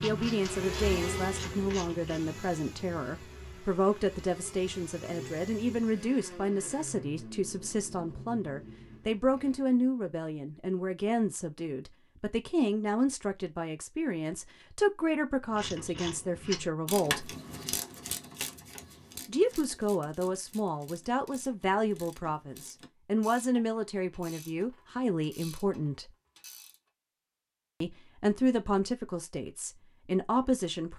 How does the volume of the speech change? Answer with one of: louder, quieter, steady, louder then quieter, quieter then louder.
steady.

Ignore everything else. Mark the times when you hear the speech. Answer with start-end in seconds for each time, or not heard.
0.0-17.3, 19.2-26.1, 27.8-30.9.